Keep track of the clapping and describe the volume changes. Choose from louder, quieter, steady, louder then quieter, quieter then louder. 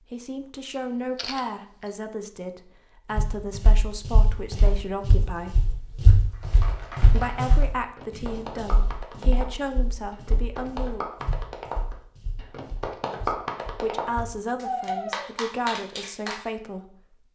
louder.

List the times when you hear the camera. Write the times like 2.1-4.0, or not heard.
0.7-1.9.